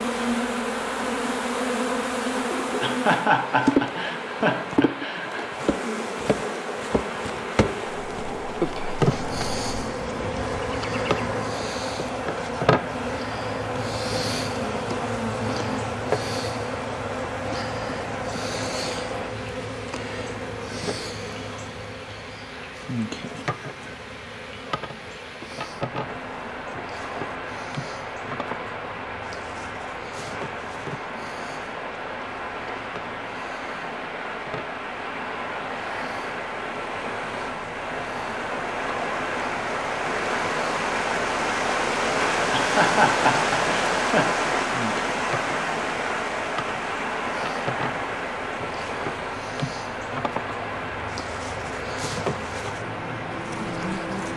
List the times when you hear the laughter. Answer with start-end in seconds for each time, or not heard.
2.8-5.5, 42.5-44.4.